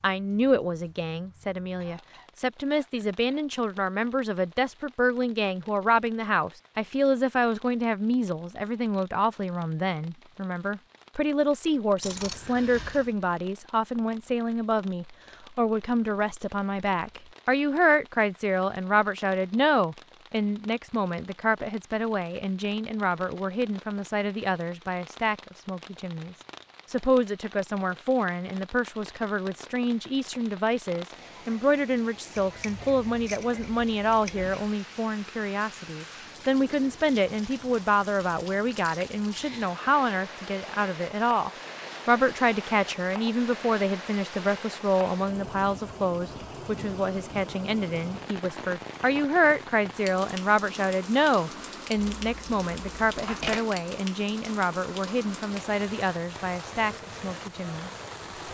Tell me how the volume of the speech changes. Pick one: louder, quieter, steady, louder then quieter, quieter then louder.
steady.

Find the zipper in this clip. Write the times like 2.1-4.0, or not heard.
not heard.